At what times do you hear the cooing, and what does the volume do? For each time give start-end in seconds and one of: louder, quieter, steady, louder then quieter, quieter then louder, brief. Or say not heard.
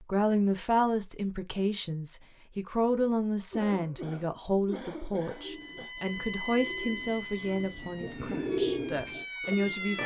5.3-10.0 louder then quieter.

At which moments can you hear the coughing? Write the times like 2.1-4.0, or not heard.
3.5-5.9.